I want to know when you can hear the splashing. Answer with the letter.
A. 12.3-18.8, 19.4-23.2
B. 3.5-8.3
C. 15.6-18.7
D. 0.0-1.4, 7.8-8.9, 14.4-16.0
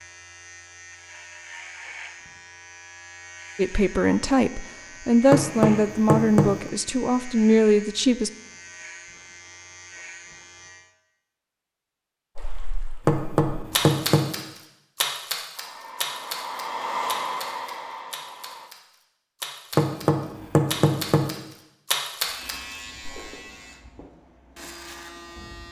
A.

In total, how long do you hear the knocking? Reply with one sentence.
The knocking can be heard for 4 seconds in total.